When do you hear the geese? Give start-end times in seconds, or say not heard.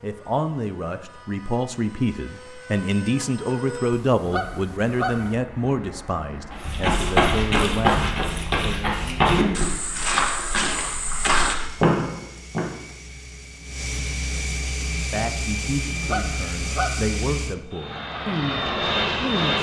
3.9-5.3, 15.9-17.1.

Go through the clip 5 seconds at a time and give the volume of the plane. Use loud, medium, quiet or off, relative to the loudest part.
quiet, quiet, medium, loud.